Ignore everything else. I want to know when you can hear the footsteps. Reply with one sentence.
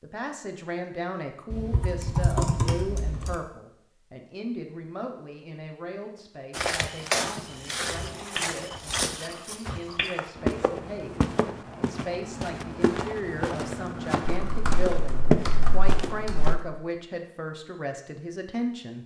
The footsteps can be heard from 6.5 to 16.6 s.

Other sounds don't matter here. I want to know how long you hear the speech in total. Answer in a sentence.
You can hear the speech for 19 seconds altogether.